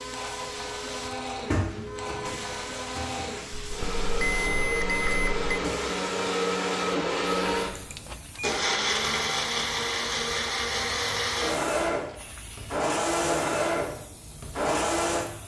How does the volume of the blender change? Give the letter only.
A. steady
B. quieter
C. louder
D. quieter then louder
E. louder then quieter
C.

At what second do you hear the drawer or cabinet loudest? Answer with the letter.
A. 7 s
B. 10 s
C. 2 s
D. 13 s
C.